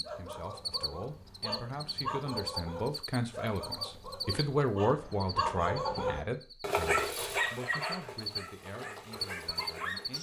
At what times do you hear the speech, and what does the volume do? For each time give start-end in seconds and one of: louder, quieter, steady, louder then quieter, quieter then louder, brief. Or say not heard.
0.0-10.1 louder then quieter.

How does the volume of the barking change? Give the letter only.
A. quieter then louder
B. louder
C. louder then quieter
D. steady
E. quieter
C.